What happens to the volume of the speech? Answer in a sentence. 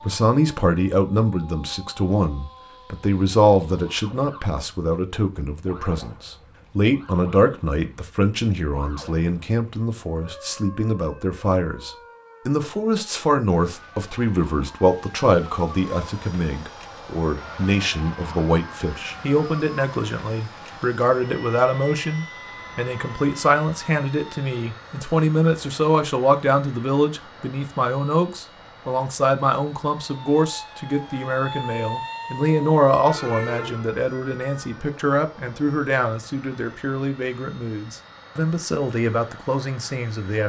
The loudness of the speech stays about the same.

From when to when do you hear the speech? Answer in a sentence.
You can hear the speech from 0.0 to 40.4 s.